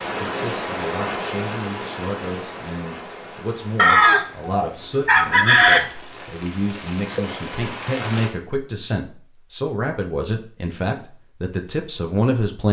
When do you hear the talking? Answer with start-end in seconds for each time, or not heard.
0.1-12.6.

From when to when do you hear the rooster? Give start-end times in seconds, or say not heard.
3.8-5.8.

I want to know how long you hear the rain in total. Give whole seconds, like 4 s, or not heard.
8 s.